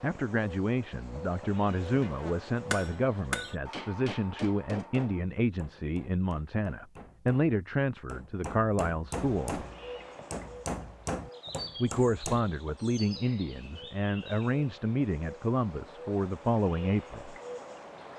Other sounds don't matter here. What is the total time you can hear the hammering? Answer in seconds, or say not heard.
11 s.